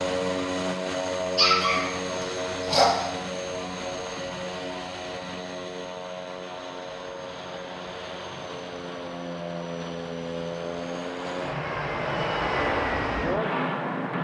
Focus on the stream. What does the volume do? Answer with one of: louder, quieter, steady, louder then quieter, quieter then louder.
louder.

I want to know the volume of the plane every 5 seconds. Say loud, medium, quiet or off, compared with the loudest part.
loud, medium, loud.